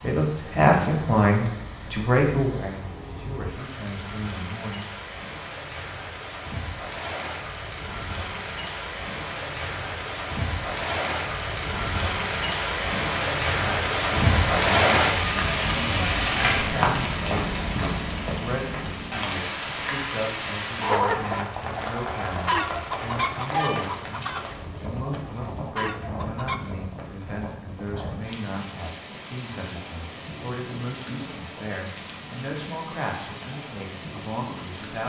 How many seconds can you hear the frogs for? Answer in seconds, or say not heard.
not heard.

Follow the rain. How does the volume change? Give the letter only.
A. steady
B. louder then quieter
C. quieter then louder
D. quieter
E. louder
B.